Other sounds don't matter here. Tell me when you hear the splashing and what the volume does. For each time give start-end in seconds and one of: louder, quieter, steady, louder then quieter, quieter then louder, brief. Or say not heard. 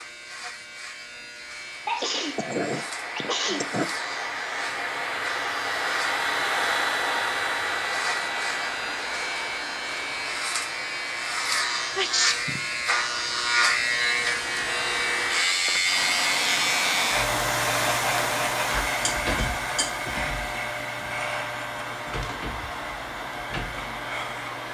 not heard.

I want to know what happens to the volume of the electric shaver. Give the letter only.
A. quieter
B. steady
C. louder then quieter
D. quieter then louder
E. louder
C.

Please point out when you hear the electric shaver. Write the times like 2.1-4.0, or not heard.
0.0-24.6.